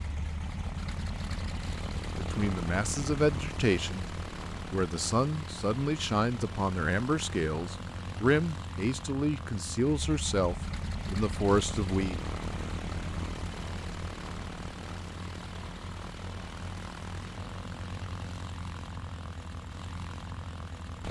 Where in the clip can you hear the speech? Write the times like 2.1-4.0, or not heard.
2.1-4.0, 4.7-12.2.